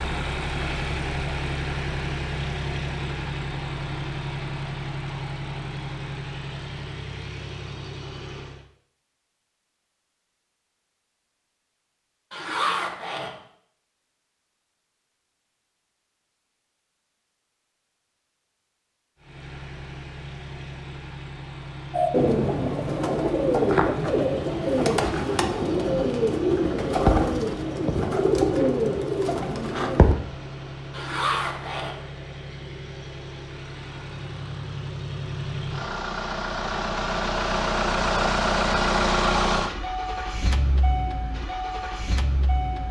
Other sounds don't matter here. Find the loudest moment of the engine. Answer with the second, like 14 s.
39 s.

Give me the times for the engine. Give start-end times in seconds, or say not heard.
0.0-8.7, 19.1-42.8.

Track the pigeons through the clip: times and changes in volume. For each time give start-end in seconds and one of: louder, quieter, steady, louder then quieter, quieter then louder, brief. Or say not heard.
21.9-30.1 steady.